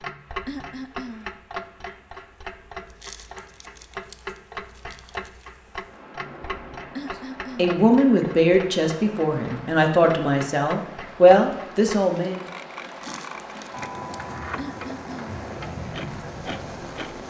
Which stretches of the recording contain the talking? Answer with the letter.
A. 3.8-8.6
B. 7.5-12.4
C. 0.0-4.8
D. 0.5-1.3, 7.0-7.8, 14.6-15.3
B.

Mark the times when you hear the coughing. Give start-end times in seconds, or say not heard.
0.5-1.3, 7.0-7.8, 14.6-15.3.